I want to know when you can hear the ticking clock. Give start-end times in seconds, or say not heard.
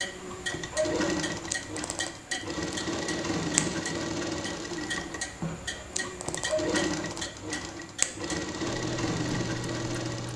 0.0-10.3.